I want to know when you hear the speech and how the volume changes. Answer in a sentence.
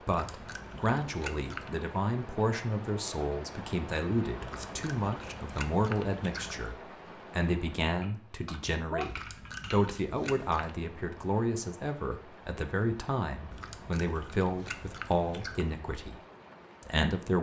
The speech can be heard from 0.0 to 16.2 s, at a steady volume; and briefly from 16.8 to 17.3 s.